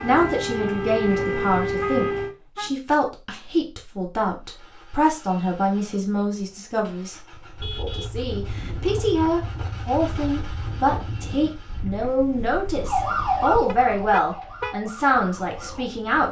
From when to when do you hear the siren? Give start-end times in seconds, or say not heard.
0.0-2.3, 12.8-15.9.